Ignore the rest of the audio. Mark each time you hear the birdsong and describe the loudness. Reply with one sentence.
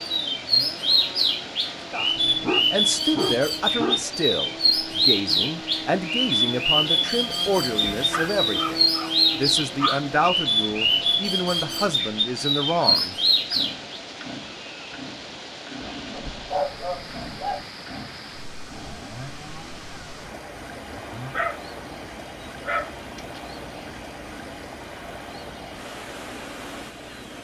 You can hear the birdsong from 0.0 to 14.0 s, at a steady volume.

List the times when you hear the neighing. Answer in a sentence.
You can't hear the neighing here.